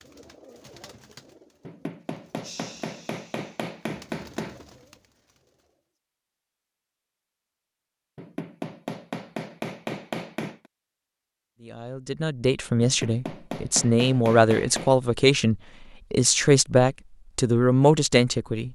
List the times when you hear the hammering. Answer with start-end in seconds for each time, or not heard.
1.6-4.5, 8.2-10.7, 12.8-14.9.